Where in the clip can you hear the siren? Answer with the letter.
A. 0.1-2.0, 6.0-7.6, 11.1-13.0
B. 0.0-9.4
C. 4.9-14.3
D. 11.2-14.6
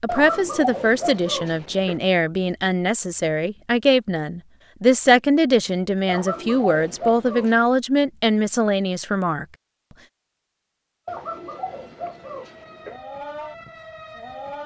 D.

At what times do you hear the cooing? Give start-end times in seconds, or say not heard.
0.1-2.0, 6.0-7.6, 11.1-13.0.